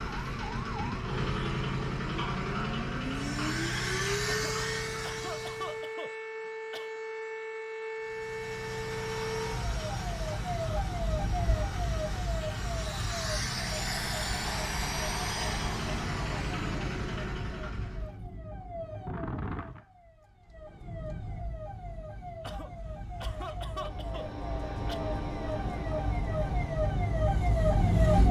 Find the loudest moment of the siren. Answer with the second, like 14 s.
28 s.